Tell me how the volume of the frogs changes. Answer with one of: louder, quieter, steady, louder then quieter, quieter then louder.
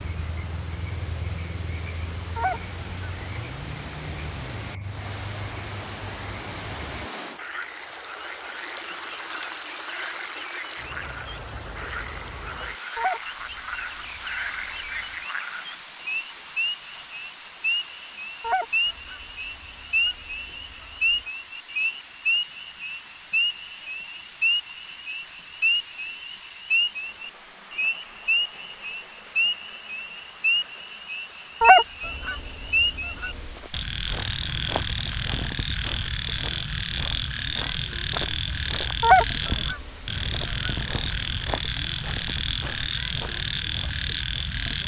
louder.